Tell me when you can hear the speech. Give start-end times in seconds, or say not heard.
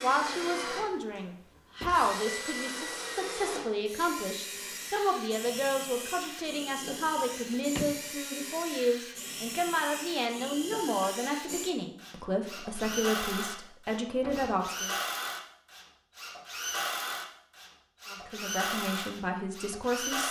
0.0-14.9, 18.1-20.2.